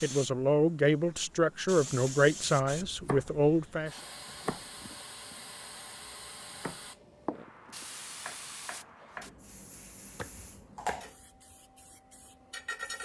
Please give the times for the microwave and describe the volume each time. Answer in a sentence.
The microwave can't be heard in this clip.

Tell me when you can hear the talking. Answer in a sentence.
You can hear the talking from 0.0 to 4.0 s.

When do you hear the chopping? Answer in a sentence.
The chopping can be heard from 2.9 to 3.3 s, from 4.2 to 9.3 s and from 10.2 to 11.1 s.